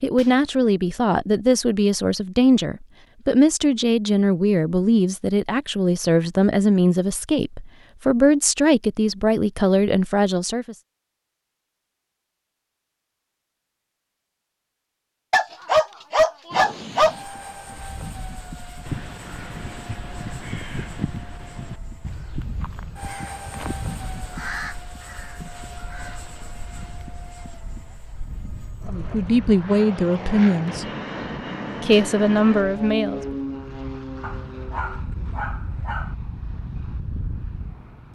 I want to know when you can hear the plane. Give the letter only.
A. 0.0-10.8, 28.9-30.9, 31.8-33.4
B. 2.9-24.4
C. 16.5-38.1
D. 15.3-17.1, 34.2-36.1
C.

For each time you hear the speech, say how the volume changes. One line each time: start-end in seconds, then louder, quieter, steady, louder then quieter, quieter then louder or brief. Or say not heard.
0.0-10.8 steady
28.9-30.9 brief
31.8-33.4 brief.